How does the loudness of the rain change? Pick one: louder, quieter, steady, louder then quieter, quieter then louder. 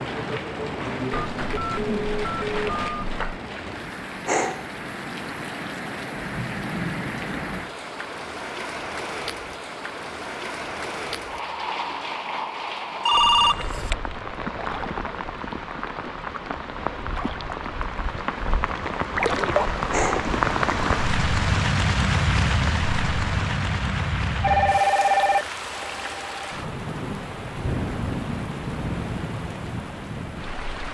louder then quieter.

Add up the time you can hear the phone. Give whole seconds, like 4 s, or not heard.
5 s.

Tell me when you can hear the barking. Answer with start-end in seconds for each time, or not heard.
4.2-4.7, 19.9-20.3.